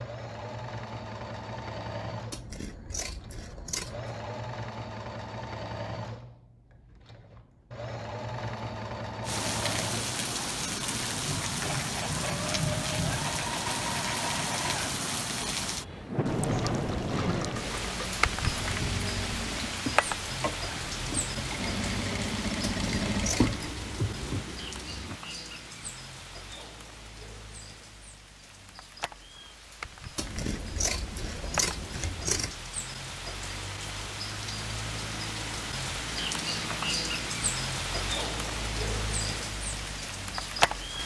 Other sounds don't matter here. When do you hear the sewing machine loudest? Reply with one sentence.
The loudest moment of the sewing machine is at 23 seconds.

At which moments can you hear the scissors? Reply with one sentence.
You can hear the scissors from 2.3 to 4.2 s, from 22.7 to 23.6 s and from 30.1 to 32.5 s.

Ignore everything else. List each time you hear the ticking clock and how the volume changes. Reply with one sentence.
You can't hear the ticking clock here.